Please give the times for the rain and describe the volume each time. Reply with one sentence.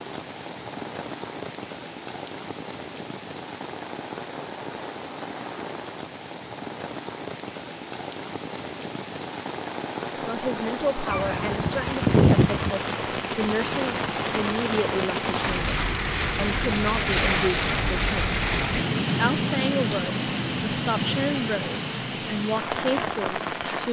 The rain can be heard from 0.0 to 23.8 s, getting louder.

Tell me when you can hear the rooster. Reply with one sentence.
The rooster can be heard from 11.1 to 12.7 s.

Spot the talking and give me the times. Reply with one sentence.
You can hear the talking from 10.2 to 18.4 s and from 19.1 to 23.8 s.